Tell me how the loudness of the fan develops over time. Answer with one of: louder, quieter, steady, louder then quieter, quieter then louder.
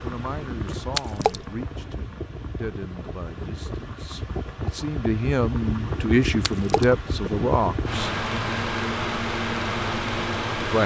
louder.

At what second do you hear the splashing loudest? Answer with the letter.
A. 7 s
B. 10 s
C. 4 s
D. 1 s
D.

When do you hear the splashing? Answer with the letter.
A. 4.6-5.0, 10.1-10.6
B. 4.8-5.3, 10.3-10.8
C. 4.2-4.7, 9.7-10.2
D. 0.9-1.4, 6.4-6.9
D.